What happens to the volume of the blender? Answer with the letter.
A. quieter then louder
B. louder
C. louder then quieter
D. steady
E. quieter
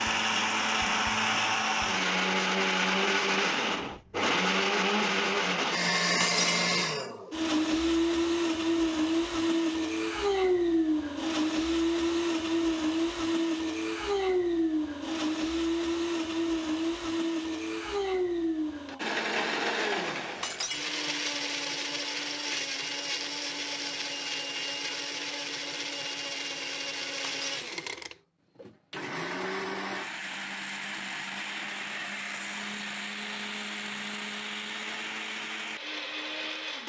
E.